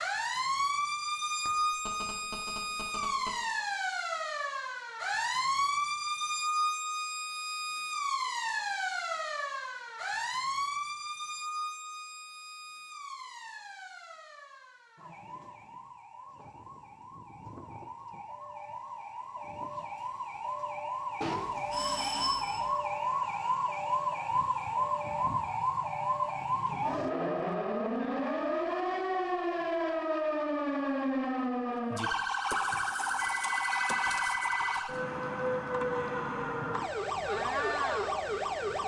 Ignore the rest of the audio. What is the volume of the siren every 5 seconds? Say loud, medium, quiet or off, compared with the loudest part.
loud, loud, medium, quiet, loud, loud, loud, loud.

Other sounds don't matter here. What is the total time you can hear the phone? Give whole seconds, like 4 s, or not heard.
5 s.